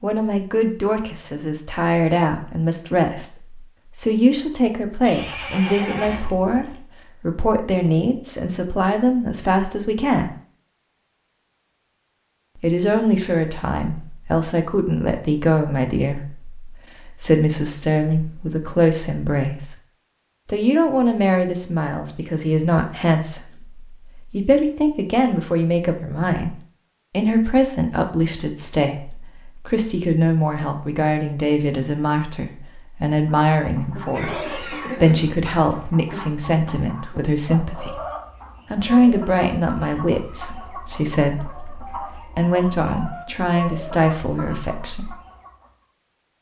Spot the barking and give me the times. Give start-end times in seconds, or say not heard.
not heard.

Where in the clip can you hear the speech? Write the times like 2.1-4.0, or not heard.
0.0-10.3, 12.6-19.8, 20.4-38.0, 38.7-45.1.